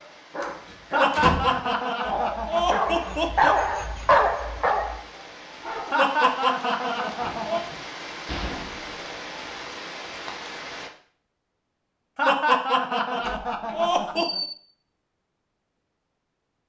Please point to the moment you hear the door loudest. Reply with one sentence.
The volume of the door peaks at 1 second.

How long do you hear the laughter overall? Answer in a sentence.
The laughter can be heard for 7 seconds in total.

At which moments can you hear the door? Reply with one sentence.
The door can be heard from 0.4 to 1.7 s, from 8.2 to 8.9 s and from 13.2 to 14.6 s.